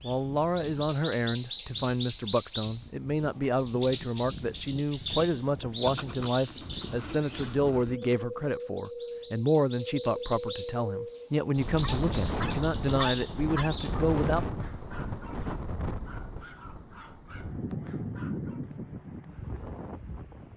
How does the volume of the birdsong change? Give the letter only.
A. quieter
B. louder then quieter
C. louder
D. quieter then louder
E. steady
D.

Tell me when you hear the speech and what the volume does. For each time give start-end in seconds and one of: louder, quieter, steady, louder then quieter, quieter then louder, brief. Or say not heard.
0.0-14.4 steady.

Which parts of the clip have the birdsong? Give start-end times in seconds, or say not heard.
0.0-13.9.